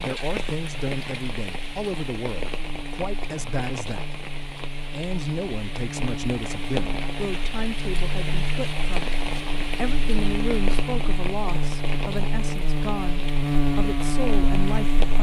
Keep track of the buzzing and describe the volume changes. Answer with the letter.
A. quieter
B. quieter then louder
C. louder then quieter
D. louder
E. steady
D.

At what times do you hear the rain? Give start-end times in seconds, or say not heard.
0.0-15.1.